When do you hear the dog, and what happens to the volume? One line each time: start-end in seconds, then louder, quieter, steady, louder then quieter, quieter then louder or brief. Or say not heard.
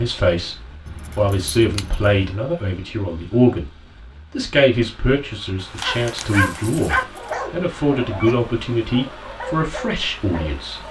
5.8-10.8 quieter.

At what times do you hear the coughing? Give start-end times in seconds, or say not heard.
not heard.